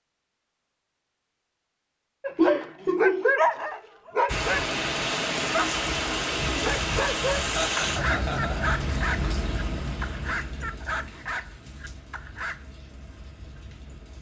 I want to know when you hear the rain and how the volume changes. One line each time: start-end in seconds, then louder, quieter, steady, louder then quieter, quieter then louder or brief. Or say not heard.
4.2-14.1 quieter.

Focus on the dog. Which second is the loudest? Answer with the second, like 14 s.
3 s.